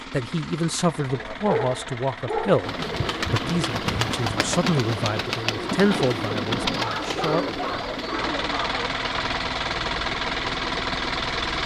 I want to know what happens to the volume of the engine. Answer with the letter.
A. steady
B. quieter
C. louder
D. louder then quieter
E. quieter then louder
C.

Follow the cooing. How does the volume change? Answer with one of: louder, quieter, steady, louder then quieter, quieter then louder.
steady.